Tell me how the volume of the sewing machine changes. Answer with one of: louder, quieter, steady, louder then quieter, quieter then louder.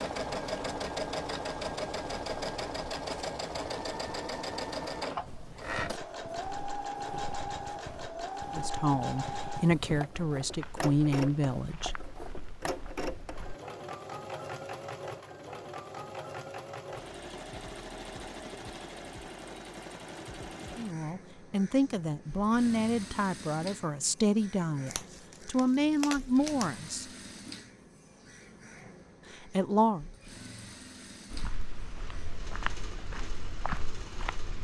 quieter.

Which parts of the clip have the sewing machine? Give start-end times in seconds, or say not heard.
0.0-34.5.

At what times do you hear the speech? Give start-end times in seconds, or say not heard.
8.5-11.9, 20.8-27.1, 29.3-30.1.